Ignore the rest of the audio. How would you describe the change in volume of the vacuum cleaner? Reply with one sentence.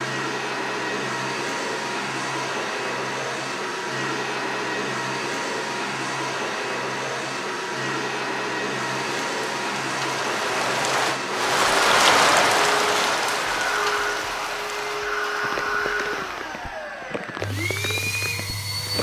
The volume of the vacuum cleaner stays about the same.